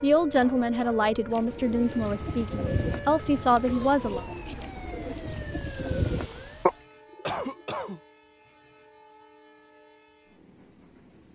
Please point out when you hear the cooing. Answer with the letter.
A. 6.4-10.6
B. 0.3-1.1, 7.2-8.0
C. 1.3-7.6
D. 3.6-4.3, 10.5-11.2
C.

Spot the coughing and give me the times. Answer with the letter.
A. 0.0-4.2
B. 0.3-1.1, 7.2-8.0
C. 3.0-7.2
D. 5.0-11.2
B.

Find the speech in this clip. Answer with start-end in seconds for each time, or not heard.
0.0-4.2.